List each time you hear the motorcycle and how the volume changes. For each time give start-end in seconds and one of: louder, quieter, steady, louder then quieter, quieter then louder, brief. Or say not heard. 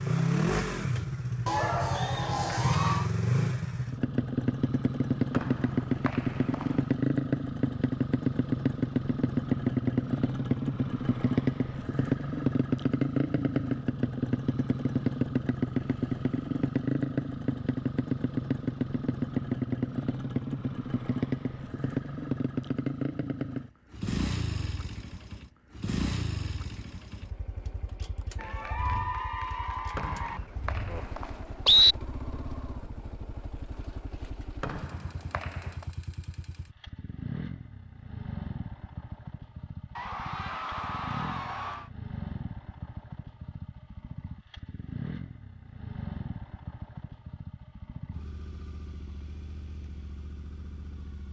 0.0-51.2 quieter.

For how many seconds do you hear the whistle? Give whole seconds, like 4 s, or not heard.
4 s.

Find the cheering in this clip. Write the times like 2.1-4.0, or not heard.
1.4-3.1, 28.4-30.4, 40.0-41.9.